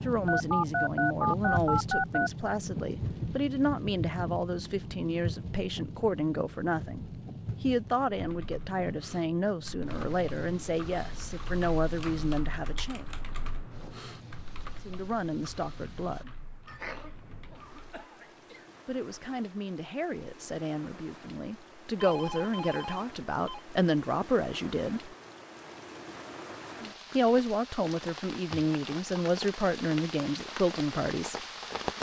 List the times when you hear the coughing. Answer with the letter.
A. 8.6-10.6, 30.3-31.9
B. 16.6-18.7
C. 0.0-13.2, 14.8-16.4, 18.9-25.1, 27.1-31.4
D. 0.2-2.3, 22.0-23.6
B.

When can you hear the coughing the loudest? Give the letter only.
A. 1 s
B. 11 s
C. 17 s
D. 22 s
C.